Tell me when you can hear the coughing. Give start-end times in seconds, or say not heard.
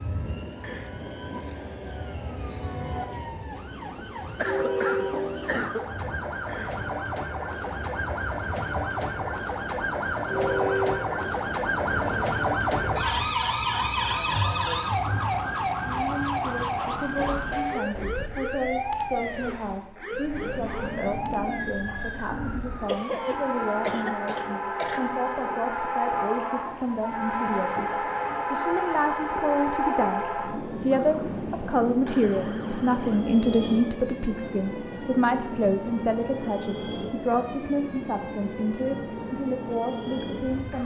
4.0-5.8, 22.9-25.1.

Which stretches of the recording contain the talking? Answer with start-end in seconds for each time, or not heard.
15.8-40.8.